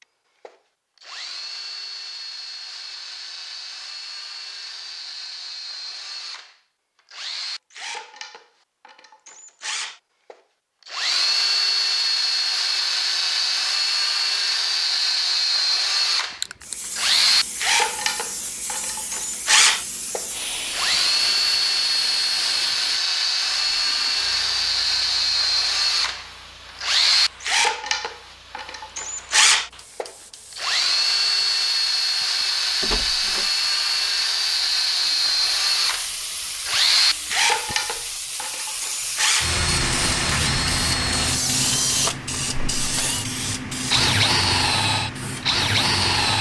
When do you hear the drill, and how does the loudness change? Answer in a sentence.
The drill can be heard from 0.0 to 46.3 s, getting louder.